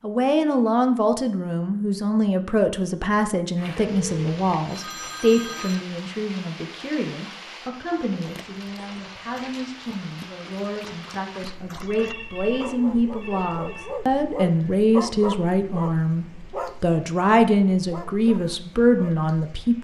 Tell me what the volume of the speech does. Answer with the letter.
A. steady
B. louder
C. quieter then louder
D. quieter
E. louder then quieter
C.